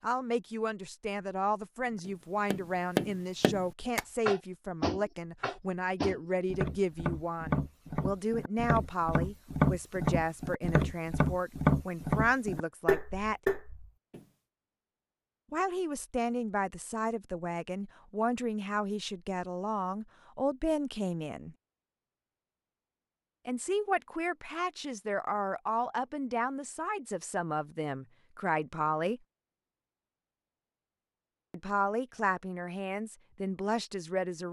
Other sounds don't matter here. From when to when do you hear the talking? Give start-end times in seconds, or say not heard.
0.0-13.4, 15.5-21.6, 23.4-29.2, 31.5-34.4.